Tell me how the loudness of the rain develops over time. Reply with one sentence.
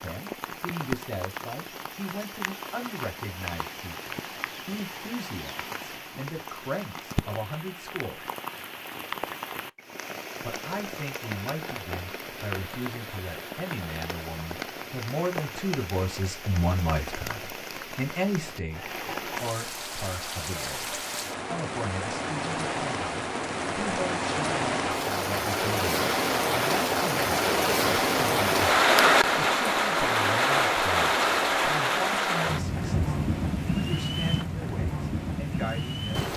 The loudness of the rain goes up.